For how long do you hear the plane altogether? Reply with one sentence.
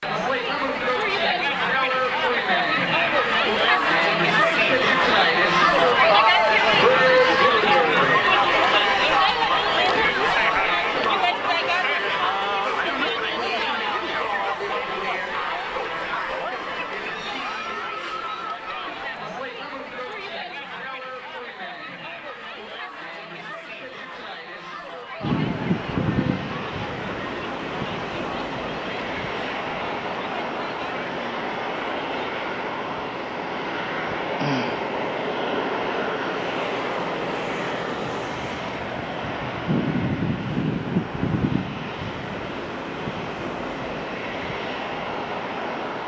The plane can be heard for 21 seconds in total.